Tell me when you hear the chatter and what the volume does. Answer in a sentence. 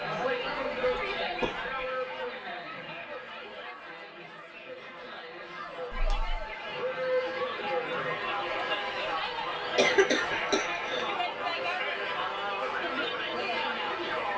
The chatter can be heard from 0.0 to 14.3 s, getting quieter then louder.